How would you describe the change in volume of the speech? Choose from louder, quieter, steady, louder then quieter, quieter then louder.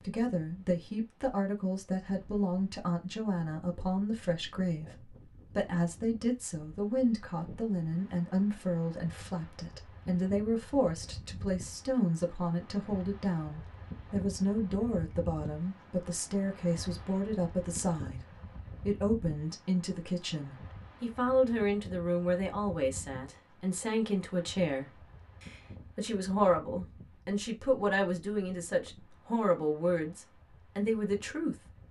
steady.